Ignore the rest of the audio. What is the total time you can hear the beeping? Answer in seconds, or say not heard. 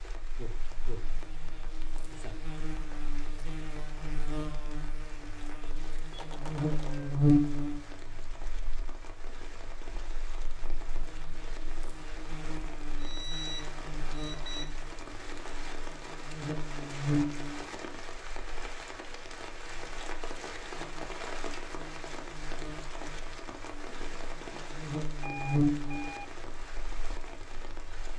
4 s.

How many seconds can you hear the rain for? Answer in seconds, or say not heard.
28 s.